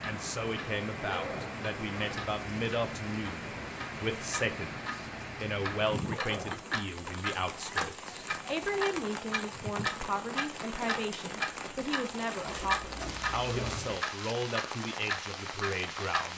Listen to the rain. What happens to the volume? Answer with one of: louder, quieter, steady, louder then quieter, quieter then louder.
steady.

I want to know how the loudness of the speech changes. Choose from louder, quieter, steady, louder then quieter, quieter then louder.
steady.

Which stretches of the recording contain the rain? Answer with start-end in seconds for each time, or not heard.
0.0-16.3.